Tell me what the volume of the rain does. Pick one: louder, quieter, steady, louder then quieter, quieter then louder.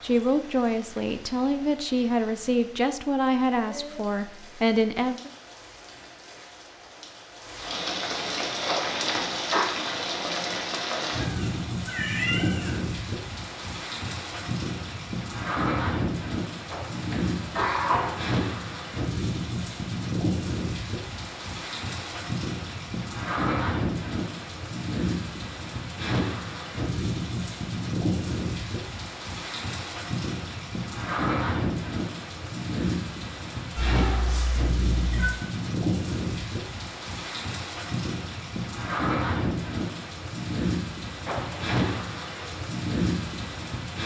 louder.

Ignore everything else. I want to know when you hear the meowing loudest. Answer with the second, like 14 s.
12 s.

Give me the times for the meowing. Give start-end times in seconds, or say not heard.
11.2-12.8, 33.8-35.4.